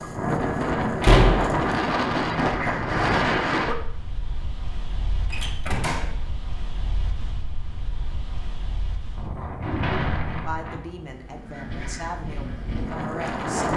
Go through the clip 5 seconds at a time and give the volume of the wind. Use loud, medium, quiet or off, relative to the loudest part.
loud, quiet, medium.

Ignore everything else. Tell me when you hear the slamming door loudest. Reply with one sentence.
The loudest moment of the slamming door is at 1 second.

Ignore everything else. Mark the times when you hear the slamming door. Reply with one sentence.
The slamming door can be heard from 1.0 to 1.6 s, from 5.3 to 6.2 s and from 9.4 to 10.6 s.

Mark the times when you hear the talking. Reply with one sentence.
The talking can be heard from 10.4 to 13.7 s.